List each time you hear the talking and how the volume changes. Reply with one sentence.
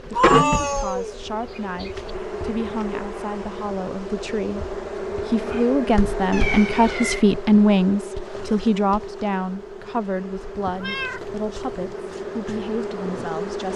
You can hear the talking from 0.2 to 13.7 s, getting louder then quieter.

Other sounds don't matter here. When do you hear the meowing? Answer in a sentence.
You can hear the meowing from 0.1 to 2.1 s, from 6.3 to 7.2 s and from 10.6 to 11.9 s.